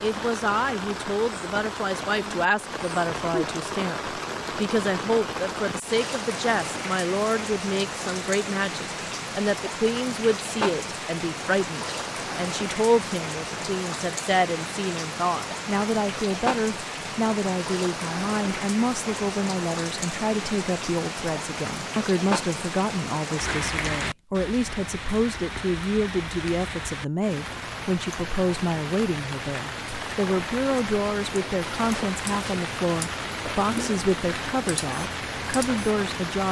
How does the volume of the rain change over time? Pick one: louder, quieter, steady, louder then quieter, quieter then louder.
steady.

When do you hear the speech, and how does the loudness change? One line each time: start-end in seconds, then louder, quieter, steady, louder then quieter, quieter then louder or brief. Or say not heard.
0.0-36.4 steady.